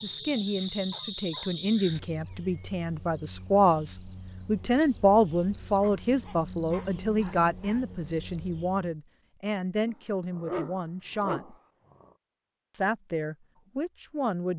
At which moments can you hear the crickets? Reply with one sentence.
You can hear the crickets from 0.0 to 8.9 s.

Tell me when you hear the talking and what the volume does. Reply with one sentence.
You can hear the talking from 0.0 to 11.6 s, getting louder then quieter; and briefly from 12.7 to 14.5 s.